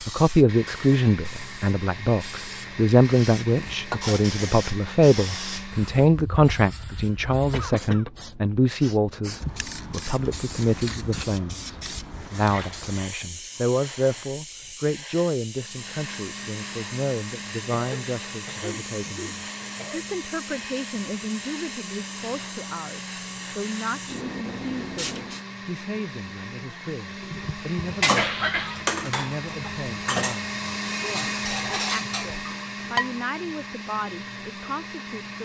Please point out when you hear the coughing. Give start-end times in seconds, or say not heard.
7.5-8.1, 17.7-20.1, 27.2-28.9.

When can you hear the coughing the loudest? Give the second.
28 s.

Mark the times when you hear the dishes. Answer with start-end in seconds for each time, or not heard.
27.8-33.1.